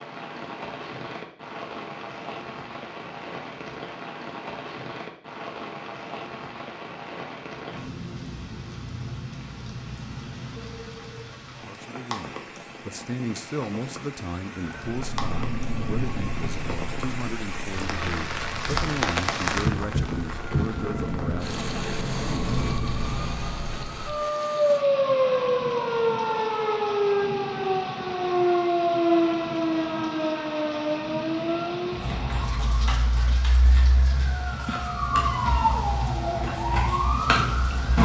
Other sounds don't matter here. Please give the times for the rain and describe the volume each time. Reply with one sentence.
The rain can be heard from 0.0 to 38.0 s, getting louder then quieter.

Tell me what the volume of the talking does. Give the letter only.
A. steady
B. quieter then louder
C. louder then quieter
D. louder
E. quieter
A.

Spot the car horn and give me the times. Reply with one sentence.
The car horn can't be heard in this clip.